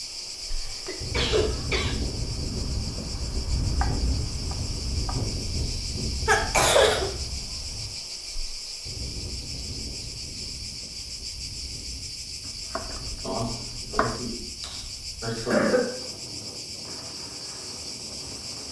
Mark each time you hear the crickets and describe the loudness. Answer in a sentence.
You can hear the crickets from 0.0 to 18.6 s, at a steady volume.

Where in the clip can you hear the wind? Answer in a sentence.
The wind can be heard from 0.0 to 18.6 s.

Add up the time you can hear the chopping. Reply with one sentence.
You can hear the chopping for 3 seconds altogether.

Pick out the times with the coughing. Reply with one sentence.
The coughing can be heard from 0.5 to 1.9 s, from 6.2 to 7.1 s and from 13.2 to 15.9 s.